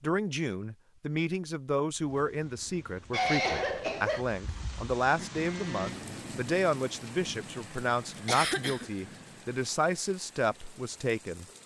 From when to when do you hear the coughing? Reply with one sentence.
You can hear the coughing from 3.1 to 4.2 s and from 8.2 to 8.9 s.